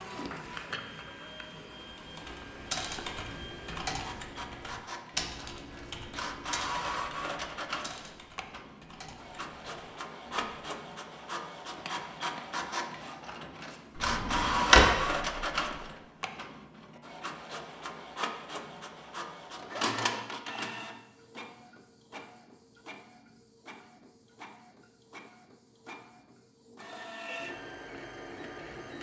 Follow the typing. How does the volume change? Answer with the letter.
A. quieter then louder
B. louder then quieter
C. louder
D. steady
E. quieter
E.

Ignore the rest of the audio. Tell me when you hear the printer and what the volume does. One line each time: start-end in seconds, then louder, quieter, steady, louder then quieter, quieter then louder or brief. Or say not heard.
0.0-28.9 louder then quieter.